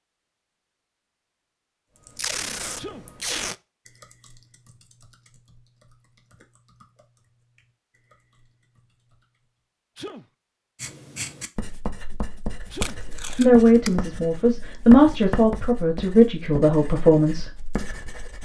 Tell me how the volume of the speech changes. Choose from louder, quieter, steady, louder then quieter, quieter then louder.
louder then quieter.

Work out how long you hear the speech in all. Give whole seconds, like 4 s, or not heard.
4 s.